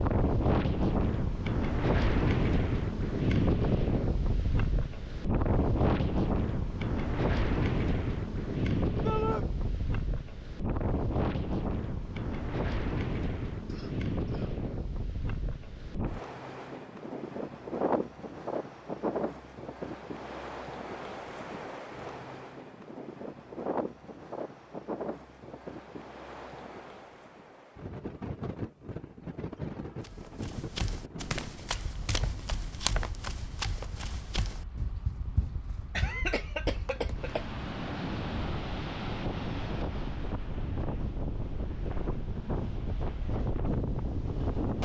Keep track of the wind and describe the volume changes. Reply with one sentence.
The volume of the wind goes down, then up.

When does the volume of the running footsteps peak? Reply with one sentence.
The volume of the running footsteps peaks at 33 seconds.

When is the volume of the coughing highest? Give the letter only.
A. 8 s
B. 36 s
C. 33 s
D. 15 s
B.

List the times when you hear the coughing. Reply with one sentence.
You can hear the coughing from 13.7 to 14.6 s and from 35.9 to 37.5 s.